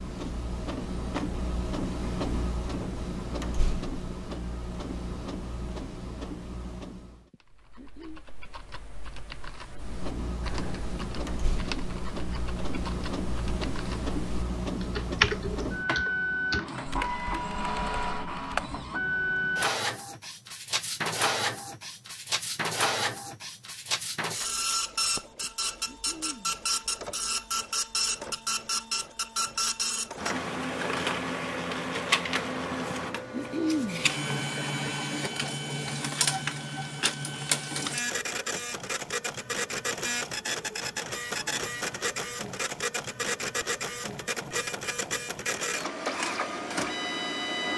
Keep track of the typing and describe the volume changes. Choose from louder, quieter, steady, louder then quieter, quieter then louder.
louder then quieter.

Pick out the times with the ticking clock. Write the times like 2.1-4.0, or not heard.
not heard.